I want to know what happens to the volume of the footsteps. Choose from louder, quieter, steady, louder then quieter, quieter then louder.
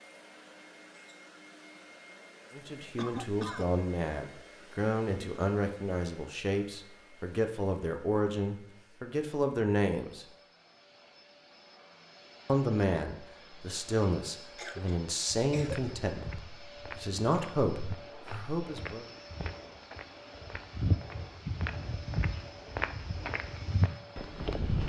louder.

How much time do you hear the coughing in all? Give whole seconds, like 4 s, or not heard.
2 s.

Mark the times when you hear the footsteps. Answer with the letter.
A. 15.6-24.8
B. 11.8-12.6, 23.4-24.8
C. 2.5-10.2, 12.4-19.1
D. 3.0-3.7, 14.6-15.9
A.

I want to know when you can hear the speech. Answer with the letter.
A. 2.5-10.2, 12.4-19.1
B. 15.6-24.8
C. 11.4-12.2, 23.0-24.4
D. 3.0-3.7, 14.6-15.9
A.